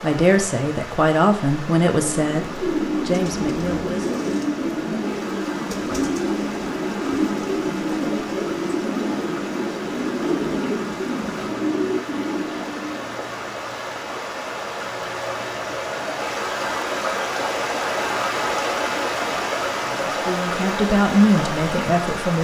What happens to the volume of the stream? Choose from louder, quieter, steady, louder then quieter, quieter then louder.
louder.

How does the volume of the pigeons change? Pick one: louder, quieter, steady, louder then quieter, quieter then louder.
steady.